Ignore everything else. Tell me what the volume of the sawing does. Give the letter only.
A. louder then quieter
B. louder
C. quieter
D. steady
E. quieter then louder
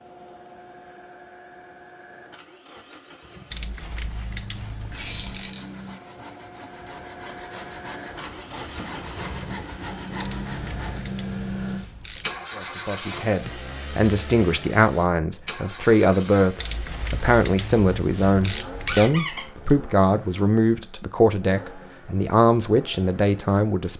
B.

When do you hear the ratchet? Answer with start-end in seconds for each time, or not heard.
3.5-5.5, 10.2-12.4, 16.6-19.1.